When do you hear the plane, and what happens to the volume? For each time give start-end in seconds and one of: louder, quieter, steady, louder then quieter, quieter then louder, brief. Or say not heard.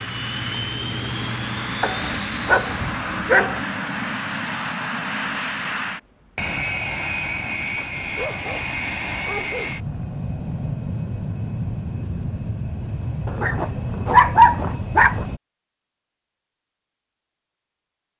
0.0-15.4 steady.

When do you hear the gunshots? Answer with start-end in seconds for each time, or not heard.
not heard.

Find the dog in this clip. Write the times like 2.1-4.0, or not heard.
1.8-3.6, 7.7-9.9, 13.2-15.2.